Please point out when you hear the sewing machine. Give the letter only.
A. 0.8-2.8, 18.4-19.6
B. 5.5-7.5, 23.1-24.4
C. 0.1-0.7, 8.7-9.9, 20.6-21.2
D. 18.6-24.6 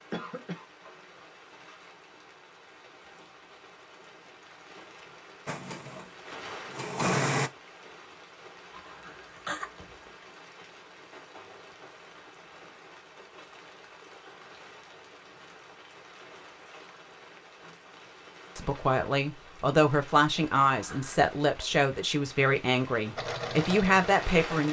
B.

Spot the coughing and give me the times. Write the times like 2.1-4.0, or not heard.
0.1-0.7, 8.7-9.9, 20.6-21.2.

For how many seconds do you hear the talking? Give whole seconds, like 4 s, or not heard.
6 s.